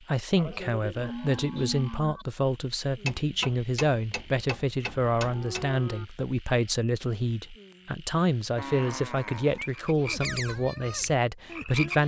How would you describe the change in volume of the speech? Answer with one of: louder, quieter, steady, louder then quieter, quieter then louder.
steady.